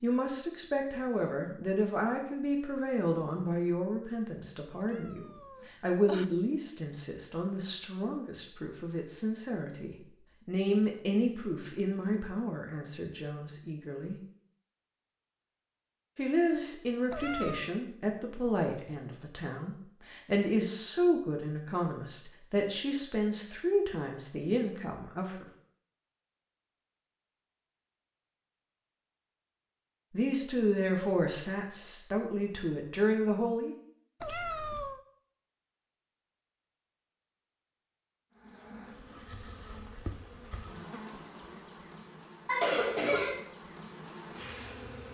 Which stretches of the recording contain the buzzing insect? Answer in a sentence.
The buzzing insect can be heard from 38.4 to 45.0 s.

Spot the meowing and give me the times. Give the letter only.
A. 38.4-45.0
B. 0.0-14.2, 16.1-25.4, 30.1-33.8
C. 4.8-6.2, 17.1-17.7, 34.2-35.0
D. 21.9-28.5
C.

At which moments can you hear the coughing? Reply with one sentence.
You can hear the coughing from 42.5 to 43.4 s.